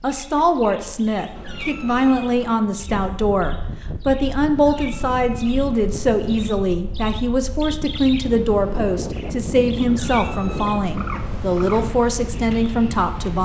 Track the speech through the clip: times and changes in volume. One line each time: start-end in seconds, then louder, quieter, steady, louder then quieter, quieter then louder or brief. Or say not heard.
0.0-13.4 steady.